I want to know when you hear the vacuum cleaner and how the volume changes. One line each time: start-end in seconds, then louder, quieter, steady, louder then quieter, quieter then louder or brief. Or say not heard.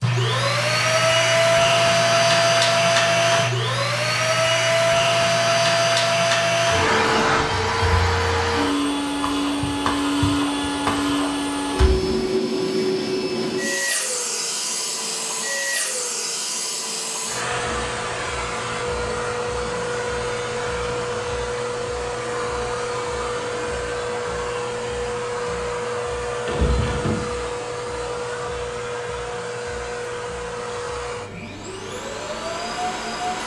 0.0-33.4 quieter.